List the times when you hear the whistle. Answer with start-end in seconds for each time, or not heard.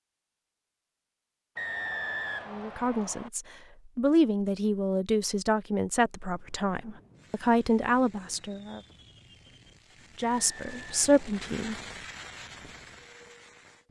1.6-3.3, 10.2-11.4.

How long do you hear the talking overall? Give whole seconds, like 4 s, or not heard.
8 s.